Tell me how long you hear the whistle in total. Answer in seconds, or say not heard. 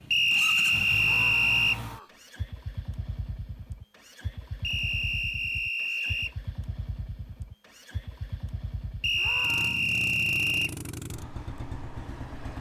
5 s.